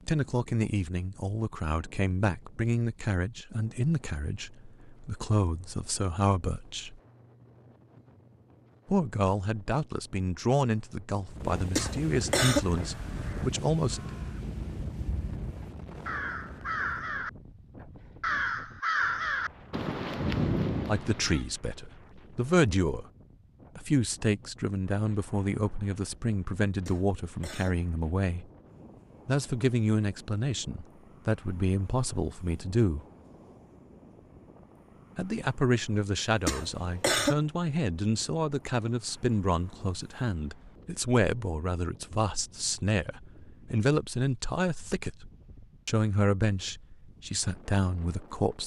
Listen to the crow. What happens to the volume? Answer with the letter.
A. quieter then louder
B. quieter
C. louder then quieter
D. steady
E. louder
E.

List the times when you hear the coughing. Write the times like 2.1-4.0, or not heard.
11.8-12.7, 26.9-27.8, 36.5-37.4.